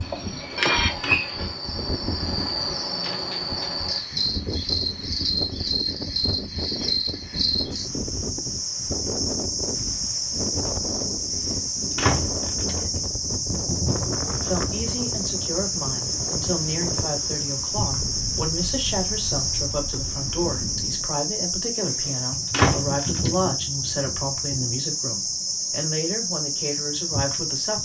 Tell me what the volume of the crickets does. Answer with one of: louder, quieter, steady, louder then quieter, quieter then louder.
steady.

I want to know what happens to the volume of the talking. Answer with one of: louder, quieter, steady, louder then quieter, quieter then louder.
steady.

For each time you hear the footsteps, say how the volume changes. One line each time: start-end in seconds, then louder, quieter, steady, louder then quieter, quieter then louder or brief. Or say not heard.
not heard.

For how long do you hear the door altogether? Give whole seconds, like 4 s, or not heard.
4 s.